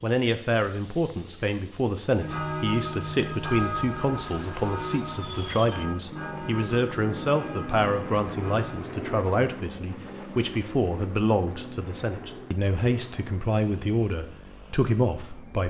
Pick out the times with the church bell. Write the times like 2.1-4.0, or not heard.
2.2-8.8.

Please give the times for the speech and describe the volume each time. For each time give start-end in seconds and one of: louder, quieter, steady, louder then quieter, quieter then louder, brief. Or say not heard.
0.0-15.6 steady.